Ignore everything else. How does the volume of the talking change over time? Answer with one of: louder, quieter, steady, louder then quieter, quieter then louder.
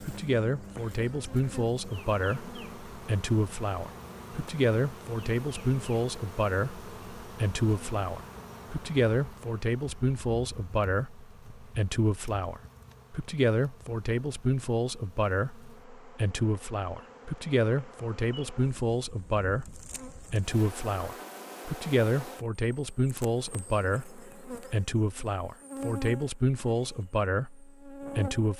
steady.